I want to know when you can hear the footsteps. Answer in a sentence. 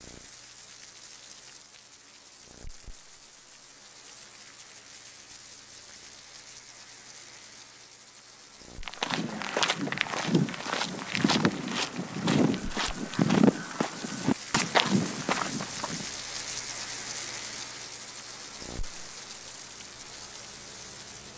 The footsteps can be heard from 8.8 to 16.1 s.